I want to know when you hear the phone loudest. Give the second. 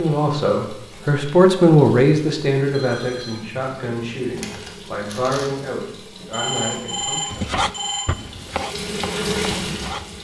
7 s.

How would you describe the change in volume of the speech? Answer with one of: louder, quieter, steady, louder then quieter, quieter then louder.
quieter.